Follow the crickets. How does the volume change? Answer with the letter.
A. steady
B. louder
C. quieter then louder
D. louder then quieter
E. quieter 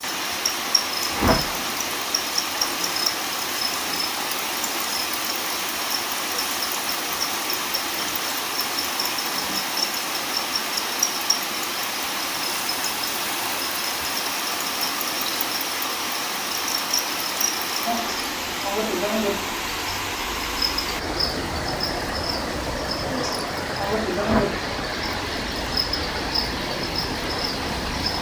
A.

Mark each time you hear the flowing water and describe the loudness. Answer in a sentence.
The flowing water can be heard from 0.0 to 28.1 s, at a steady volume.